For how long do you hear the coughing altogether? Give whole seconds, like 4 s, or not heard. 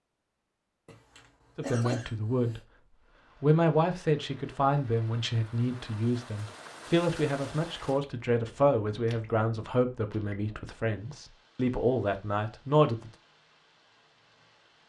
2 s.